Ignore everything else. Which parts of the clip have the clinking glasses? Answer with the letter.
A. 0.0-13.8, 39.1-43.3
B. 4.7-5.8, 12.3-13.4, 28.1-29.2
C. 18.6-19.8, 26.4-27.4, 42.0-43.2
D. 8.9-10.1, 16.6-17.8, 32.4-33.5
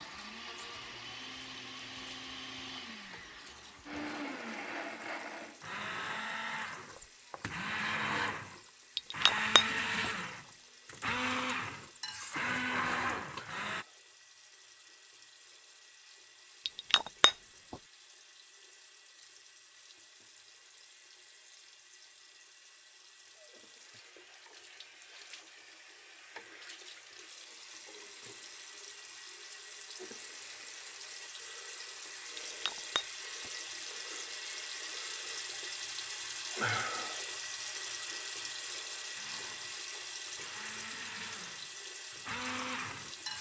D.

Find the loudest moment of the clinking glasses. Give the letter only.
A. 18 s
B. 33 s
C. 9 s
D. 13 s
C.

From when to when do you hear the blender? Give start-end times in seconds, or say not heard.
0.0-13.8, 39.1-43.3.